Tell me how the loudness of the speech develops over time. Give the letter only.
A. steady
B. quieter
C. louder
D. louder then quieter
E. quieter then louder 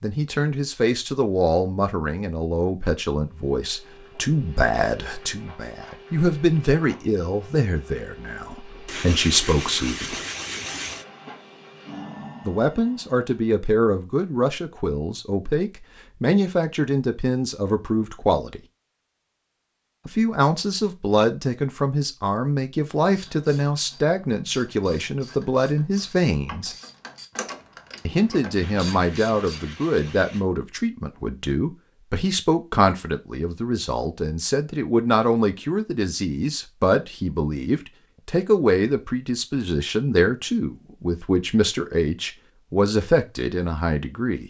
A.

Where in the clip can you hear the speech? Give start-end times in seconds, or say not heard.
0.0-10.2, 12.4-18.6, 20.1-26.8, 28.1-44.4.